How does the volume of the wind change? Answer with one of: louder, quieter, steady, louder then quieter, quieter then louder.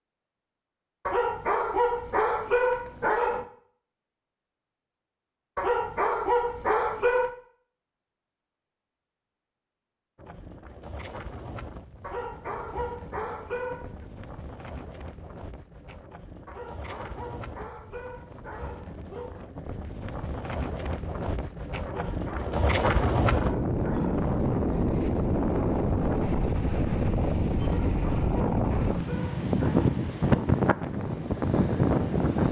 louder.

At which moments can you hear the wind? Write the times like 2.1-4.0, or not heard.
10.2-32.4.